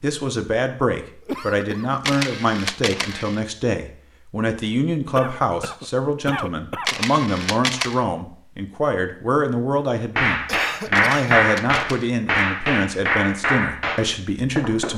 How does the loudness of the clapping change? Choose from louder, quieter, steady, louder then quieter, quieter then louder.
quieter.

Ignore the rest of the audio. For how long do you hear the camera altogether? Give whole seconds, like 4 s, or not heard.
4 s.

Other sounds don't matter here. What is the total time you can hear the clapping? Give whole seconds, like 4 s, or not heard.
5 s.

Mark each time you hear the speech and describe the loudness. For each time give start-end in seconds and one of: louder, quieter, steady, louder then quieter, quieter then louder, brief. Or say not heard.
0.0-14.9 steady.